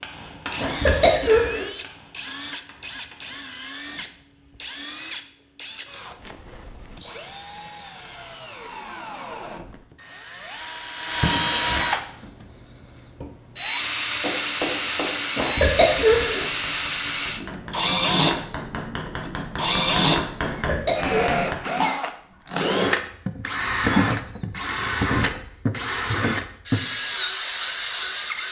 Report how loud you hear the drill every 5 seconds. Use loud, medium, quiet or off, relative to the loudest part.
quiet, quiet, loud, loud, loud, loud.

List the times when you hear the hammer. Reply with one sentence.
The hammer can be heard from 0.0 to 4.1 s and from 14.2 to 21.6 s.